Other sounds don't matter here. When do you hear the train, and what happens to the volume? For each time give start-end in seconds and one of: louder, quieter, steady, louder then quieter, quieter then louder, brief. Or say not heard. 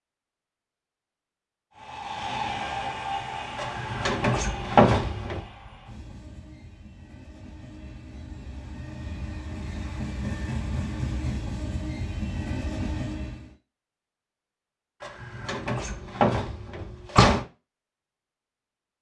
1.8-13.6 quieter then louder.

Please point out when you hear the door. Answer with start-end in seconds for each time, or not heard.
3.5-5.4, 15.0-17.4.